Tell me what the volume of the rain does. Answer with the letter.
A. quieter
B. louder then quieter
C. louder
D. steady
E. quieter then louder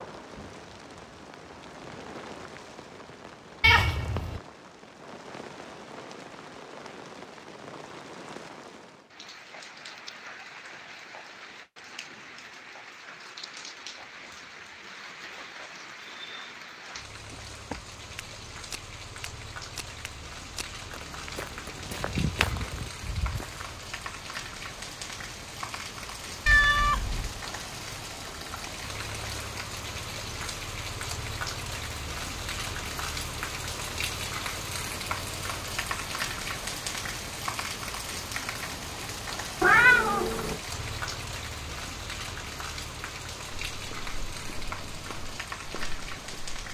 C.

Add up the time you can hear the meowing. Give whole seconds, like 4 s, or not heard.
3 s.